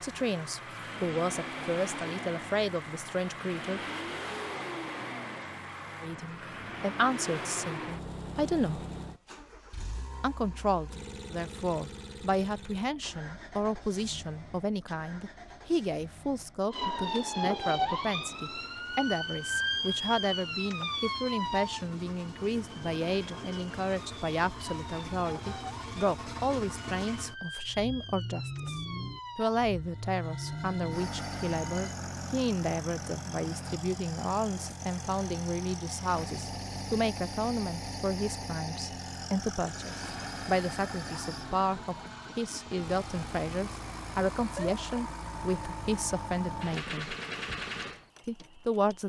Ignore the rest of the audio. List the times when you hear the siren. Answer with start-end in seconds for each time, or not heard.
16.7-32.0, 39.8-44.8.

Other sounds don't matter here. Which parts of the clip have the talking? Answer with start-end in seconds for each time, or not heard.
0.0-3.8, 6.0-8.8, 10.2-28.8, 29.4-47.1, 48.2-49.0.